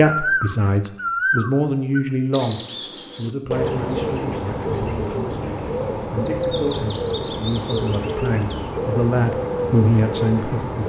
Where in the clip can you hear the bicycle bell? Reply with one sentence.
You can't hear the bicycle bell here.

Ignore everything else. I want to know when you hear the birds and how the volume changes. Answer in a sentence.
The birds can be heard from 0.0 to 10.8 s, at a steady volume.